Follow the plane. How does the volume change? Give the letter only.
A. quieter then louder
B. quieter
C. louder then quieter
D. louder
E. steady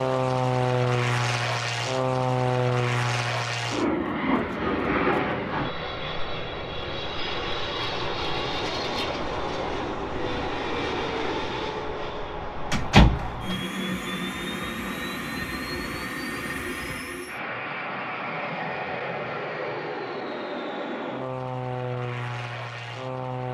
B.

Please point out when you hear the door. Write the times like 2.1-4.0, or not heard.
12.7-13.6.